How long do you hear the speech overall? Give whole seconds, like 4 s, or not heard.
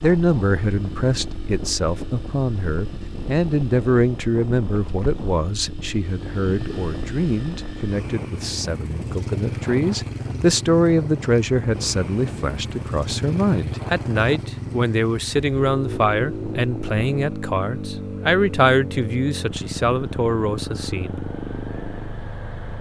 21 s.